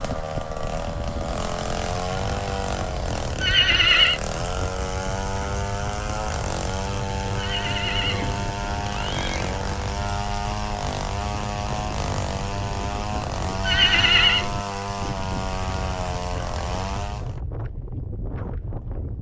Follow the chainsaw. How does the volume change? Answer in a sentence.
The volume of the chainsaw stays about the same.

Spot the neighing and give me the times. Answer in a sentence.
The neighing can be heard from 3.4 to 4.2 s, from 7.3 to 9.6 s and from 13.6 to 14.5 s.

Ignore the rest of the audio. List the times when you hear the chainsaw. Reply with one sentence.
You can hear the chainsaw from 0.0 to 17.4 s.